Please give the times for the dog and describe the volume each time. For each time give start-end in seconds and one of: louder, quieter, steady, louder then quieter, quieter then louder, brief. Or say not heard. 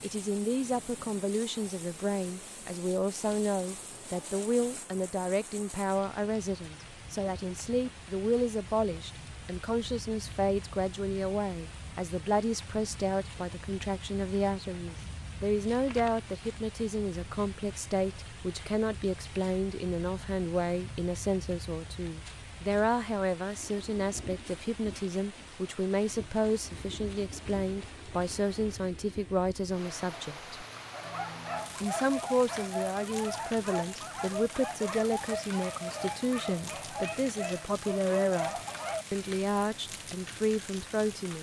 30.9-39.0 steady.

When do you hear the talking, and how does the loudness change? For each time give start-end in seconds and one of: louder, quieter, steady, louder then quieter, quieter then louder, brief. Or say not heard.
0.0-30.6 steady
31.8-41.3 steady.